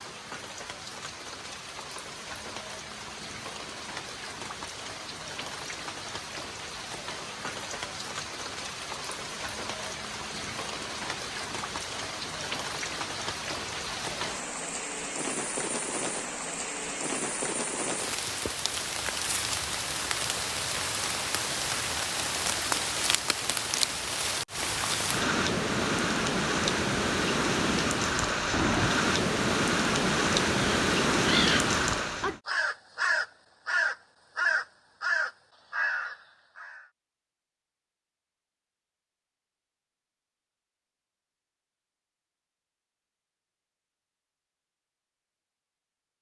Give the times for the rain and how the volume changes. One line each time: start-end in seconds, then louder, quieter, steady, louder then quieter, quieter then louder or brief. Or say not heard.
0.0-32.4 louder.